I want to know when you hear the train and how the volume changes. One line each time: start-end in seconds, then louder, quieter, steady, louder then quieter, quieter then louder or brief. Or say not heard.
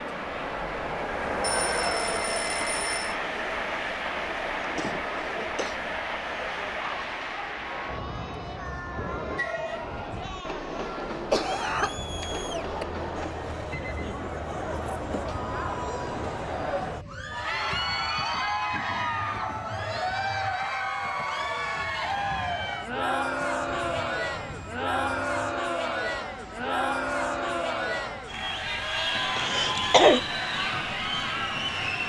0.0-32.0 quieter.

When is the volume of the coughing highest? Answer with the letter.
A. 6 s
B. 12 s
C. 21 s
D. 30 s
D.